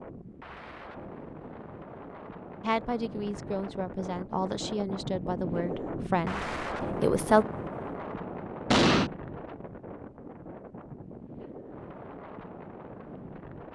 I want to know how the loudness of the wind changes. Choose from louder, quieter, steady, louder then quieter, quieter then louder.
louder then quieter.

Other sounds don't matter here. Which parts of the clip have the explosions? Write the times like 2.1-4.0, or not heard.
8.7-9.1.